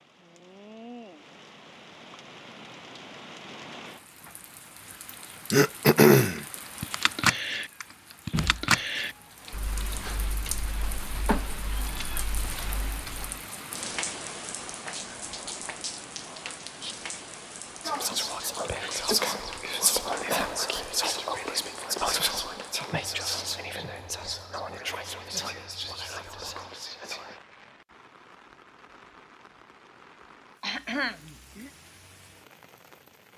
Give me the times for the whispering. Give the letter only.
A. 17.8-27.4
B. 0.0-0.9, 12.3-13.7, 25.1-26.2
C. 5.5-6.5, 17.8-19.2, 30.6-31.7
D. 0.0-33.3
A.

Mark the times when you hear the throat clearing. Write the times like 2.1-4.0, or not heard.
5.5-6.5, 17.8-19.2, 30.6-31.7.